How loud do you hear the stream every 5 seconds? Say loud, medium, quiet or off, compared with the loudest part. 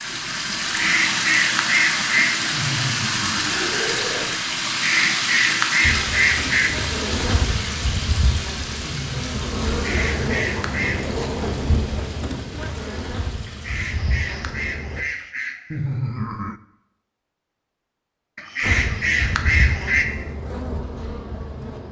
loud, loud, quiet, off, off.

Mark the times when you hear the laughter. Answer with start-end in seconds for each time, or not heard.
2.5-4.3, 8.8-10.4, 15.7-16.6.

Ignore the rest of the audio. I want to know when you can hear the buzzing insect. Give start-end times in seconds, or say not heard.
5.8-15.1, 18.6-21.8.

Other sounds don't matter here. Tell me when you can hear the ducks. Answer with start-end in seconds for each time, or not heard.
0.8-2.4, 4.7-6.7, 9.8-11.1, 13.4-15.8, 18.4-20.1.